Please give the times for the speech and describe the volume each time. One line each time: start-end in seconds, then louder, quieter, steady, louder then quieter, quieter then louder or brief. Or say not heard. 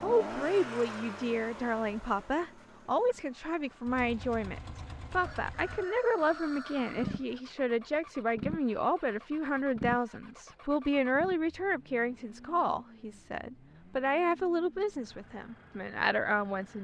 0.0-16.7 steady.